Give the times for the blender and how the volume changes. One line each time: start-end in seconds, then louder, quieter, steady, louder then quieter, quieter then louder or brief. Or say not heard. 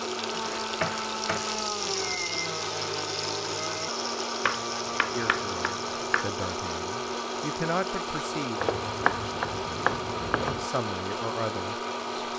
0.0-12.3 steady.